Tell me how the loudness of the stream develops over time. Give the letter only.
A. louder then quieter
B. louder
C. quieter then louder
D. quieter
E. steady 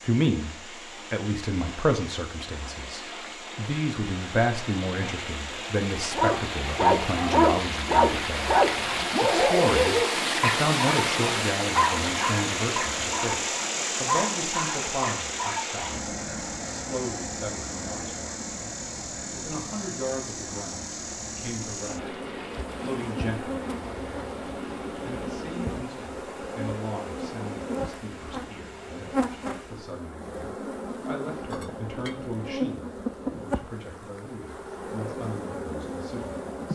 A.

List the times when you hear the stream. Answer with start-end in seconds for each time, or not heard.
0.0-29.9.